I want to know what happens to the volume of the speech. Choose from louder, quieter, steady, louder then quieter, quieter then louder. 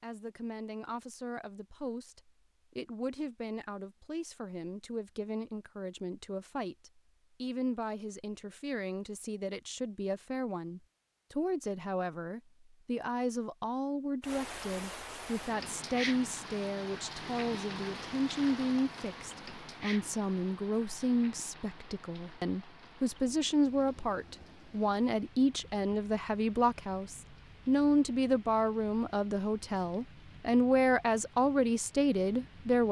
louder.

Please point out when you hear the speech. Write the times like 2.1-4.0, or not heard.
0.0-32.8.